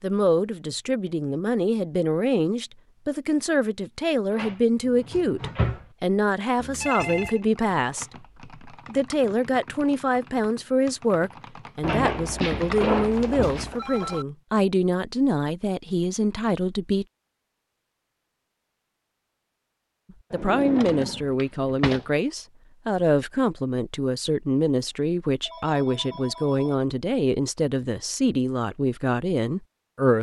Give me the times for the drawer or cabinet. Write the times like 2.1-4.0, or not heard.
4.3-5.8, 11.8-13.8, 20.3-22.1.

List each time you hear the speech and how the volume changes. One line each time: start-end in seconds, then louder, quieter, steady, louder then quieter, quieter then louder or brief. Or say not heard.
0.0-17.1 steady
20.3-30.1 steady.